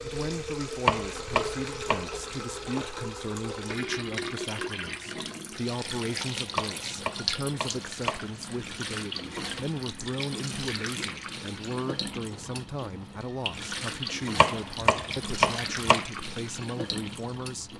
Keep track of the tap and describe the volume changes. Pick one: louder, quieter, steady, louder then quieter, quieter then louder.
steady.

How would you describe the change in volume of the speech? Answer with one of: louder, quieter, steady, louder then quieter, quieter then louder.
steady.